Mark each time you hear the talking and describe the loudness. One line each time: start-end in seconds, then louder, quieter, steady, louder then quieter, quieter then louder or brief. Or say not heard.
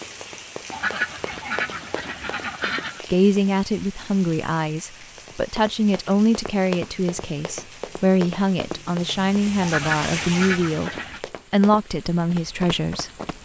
3.0-10.9 steady
11.5-13.4 brief.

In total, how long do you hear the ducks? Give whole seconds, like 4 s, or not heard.
4 s.